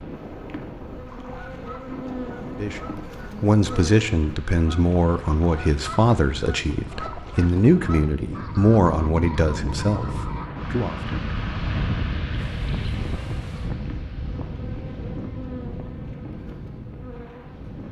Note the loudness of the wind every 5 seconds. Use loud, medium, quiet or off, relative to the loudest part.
medium, loud, loud, medium.